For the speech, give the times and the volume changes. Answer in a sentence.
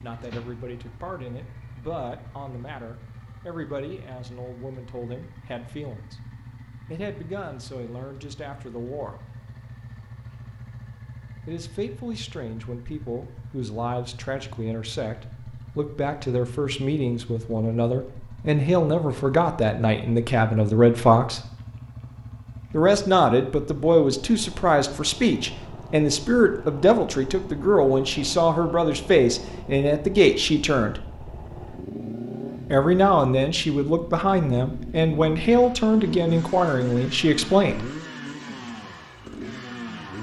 You can hear the speech from 0.0 to 9.2 s, at a steady volume; from 11.4 to 21.4 s, getting louder; from 22.7 to 31.1 s, at a steady volume; and from 32.7 to 37.9 s, at a steady volume.